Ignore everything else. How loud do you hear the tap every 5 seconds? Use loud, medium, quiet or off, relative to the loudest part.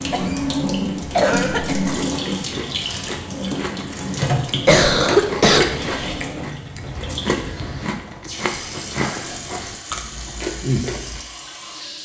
loud, medium, medium.